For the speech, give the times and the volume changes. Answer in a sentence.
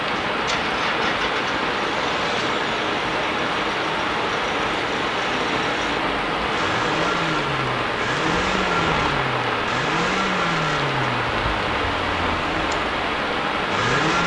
The speech can't be heard in this clip.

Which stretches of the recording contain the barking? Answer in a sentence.
You can't hear the barking here.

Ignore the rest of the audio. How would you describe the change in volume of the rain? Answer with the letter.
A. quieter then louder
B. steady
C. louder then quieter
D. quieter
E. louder
B.